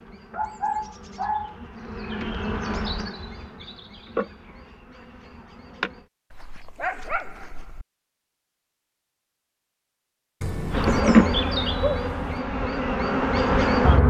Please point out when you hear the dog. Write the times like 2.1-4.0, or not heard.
0.3-1.6, 6.3-7.8, 10.4-12.4.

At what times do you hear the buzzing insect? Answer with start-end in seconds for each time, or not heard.
0.0-6.0, 10.7-14.0.